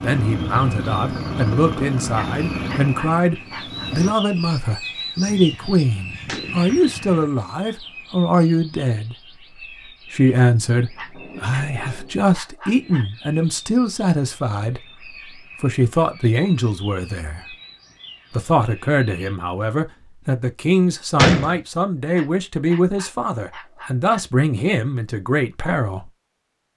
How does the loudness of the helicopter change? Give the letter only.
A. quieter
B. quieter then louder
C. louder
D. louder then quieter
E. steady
A.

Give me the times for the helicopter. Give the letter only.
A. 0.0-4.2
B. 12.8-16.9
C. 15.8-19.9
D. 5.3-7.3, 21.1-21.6
A.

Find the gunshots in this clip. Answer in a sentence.
The gunshots can be heard from 5.3 to 7.3 s and from 21.1 to 21.6 s.